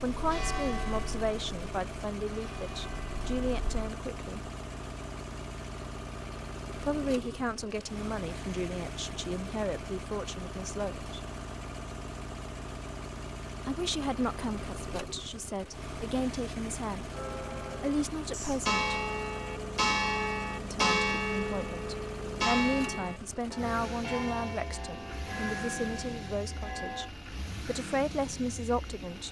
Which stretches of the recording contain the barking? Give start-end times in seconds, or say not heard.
not heard.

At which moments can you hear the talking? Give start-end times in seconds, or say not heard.
0.0-4.5, 6.8-11.2, 13.7-18.9, 20.6-29.2.